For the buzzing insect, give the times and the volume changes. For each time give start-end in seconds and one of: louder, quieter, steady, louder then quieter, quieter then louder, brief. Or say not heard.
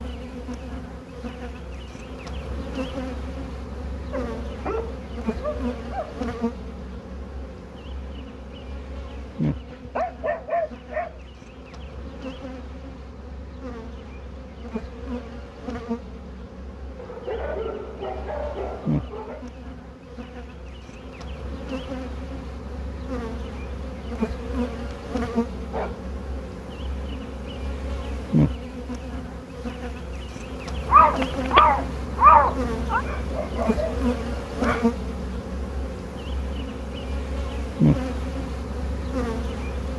0.0-39.9 louder.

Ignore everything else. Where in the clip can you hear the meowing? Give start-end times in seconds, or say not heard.
30.9-33.0.